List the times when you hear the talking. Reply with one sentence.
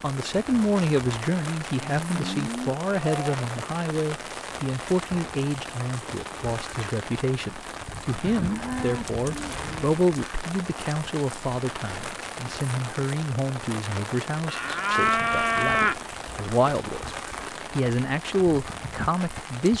You can hear the talking from 0.0 to 19.7 s.